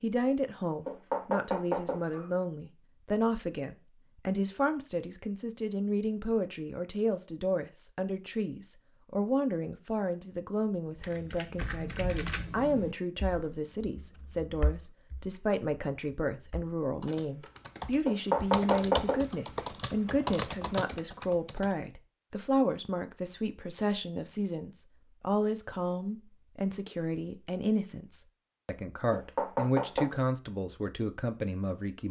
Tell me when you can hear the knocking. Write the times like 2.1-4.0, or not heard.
0.8-2.2, 18.1-19.2, 29.1-30.2.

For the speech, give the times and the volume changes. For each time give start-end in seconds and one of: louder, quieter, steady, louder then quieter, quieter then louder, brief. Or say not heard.
0.0-32.0 steady.